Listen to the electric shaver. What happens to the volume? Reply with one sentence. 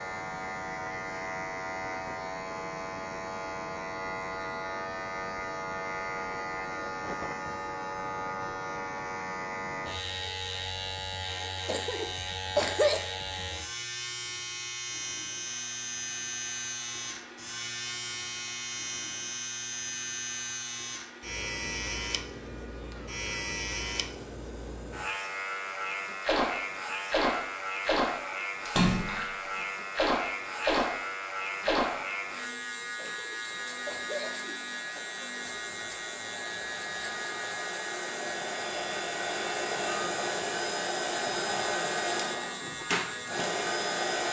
The volume of the electric shaver stays about the same.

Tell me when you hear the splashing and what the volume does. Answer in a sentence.
The splashing can be heard from 26.2 to 32.1 s, at a steady volume.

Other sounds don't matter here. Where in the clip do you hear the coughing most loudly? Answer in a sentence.
The loudest moment of the coughing is at 13 seconds.